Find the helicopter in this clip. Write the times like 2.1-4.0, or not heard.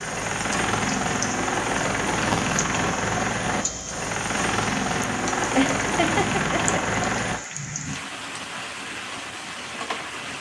0.0-7.4.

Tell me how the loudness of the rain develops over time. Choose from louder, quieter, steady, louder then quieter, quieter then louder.
steady.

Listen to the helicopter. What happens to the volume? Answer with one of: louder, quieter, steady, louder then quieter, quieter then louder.
steady.